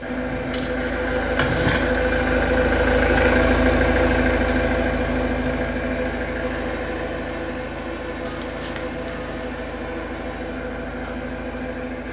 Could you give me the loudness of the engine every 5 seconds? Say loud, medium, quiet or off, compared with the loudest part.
loud, medium, medium.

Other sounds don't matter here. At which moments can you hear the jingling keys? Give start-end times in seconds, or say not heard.
0.5-2.2, 8.2-9.4.